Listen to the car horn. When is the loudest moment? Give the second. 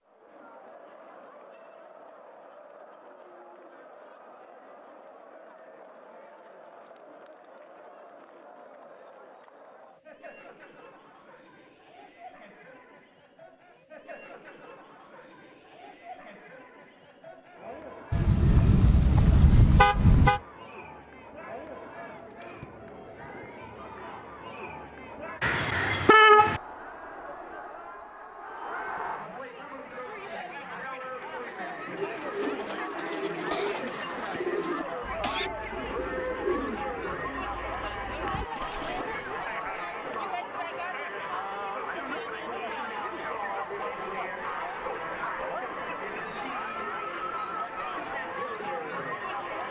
26 s.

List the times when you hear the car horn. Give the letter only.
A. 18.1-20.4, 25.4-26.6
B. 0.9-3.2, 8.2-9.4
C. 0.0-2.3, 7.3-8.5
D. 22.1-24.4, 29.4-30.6
A.